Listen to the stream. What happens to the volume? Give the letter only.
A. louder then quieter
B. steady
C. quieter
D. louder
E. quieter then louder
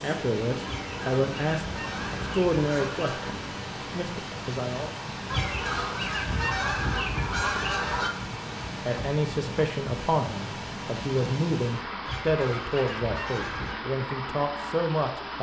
B.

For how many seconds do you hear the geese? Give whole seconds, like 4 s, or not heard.
7 s.